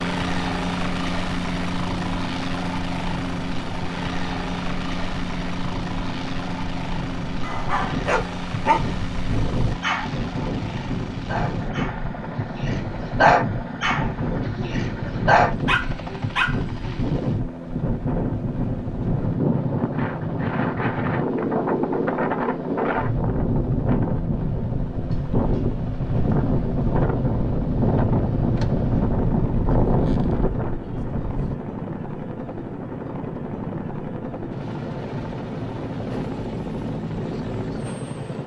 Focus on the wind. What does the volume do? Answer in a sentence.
The volume of the wind goes up.